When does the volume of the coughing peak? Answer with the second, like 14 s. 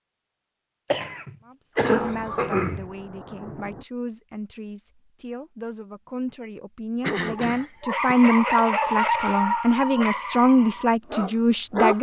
2 s.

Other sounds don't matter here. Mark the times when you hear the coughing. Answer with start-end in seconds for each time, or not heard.
0.9-2.9, 7.0-8.2.